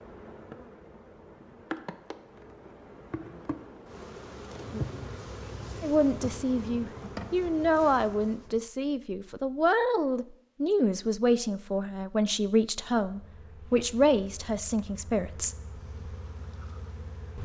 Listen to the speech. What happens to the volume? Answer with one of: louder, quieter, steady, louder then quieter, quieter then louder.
steady.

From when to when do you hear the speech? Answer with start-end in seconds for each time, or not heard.
5.8-15.6.